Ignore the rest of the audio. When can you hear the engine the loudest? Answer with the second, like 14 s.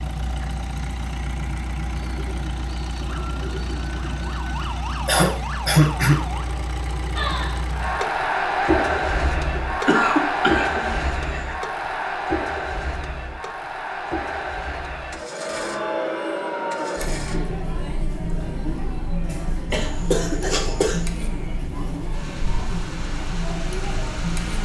9 s.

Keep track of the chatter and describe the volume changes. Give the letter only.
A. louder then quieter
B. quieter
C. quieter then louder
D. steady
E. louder
B.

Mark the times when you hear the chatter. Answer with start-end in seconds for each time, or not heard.
7.2-24.6.